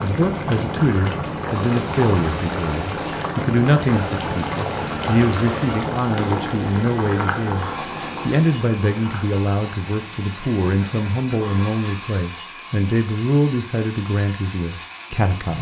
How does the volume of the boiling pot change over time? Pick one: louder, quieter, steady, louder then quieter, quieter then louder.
quieter.